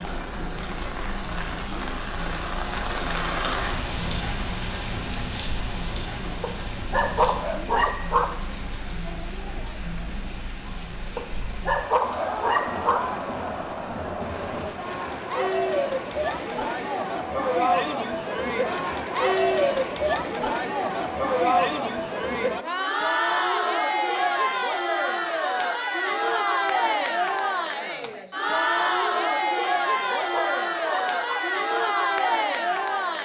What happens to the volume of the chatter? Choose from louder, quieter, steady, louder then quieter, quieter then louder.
louder.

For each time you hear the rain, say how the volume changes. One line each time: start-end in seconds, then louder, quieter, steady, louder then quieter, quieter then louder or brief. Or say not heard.
0.0-17.1 quieter.